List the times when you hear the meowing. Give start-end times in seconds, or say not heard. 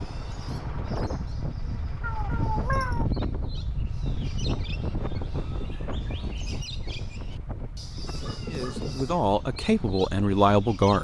2.0-3.0, 8.1-9.2.